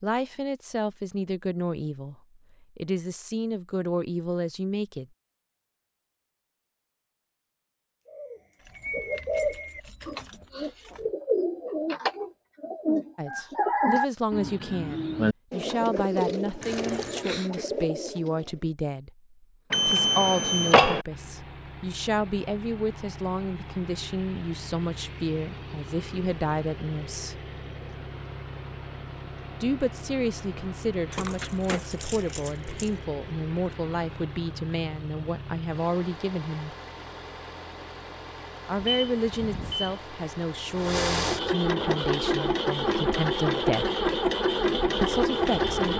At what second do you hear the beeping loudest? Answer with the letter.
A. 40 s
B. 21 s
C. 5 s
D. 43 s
B.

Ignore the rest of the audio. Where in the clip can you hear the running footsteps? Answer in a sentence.
You can't hear the running footsteps here.